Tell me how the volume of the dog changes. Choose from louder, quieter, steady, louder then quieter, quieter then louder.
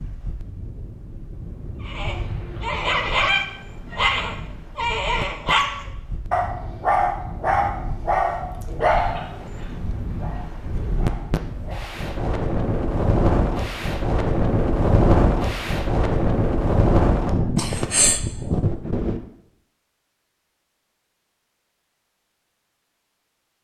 quieter.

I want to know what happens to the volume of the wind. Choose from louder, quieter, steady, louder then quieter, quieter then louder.
louder.